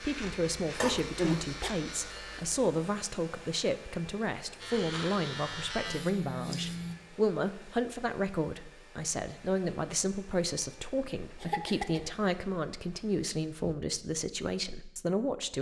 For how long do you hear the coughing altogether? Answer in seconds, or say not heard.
2 s.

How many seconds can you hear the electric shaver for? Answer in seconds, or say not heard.
5 s.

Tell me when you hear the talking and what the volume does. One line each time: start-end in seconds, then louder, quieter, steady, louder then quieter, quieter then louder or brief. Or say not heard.
0.0-15.5 steady.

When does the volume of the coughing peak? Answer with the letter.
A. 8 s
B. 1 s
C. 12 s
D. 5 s
B.